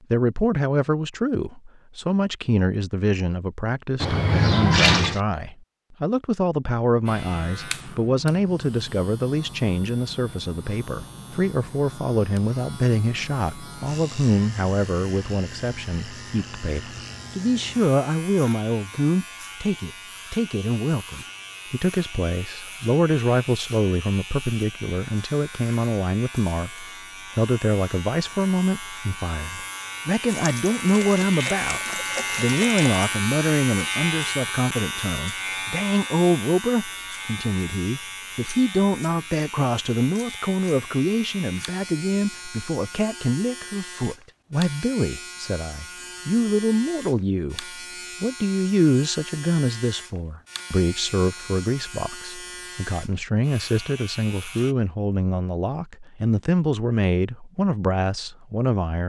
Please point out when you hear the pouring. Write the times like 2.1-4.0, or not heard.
4.0-5.2, 30.3-33.0.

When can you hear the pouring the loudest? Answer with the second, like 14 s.
5 s.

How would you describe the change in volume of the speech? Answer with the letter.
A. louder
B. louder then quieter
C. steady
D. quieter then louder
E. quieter
C.